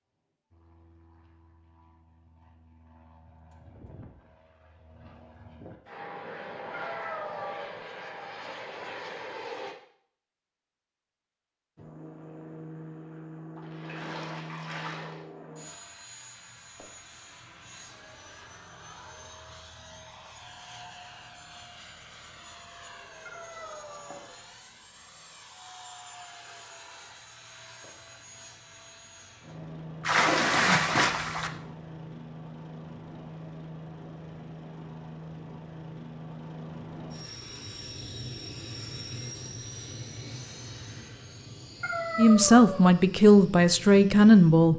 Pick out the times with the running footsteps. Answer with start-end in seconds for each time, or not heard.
not heard.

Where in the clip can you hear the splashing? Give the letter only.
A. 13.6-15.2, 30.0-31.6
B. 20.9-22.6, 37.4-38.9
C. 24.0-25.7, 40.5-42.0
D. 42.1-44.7
A.